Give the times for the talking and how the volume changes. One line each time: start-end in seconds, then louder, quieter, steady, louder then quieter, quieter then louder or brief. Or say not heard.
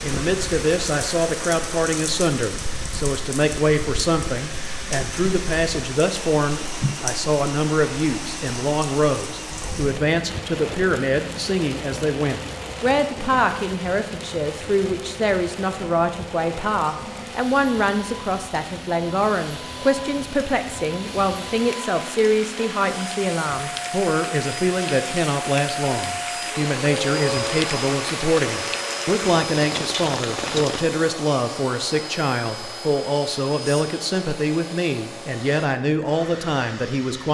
0.0-37.2 steady.